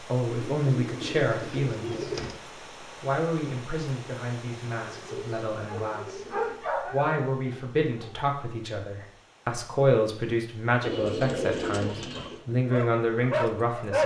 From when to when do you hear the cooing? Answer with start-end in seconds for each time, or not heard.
0.2-2.4, 4.8-6.6, 10.8-12.4.